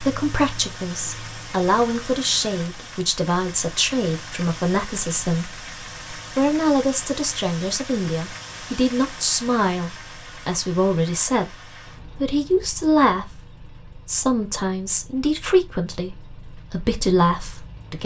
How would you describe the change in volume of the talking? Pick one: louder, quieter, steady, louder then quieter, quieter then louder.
steady.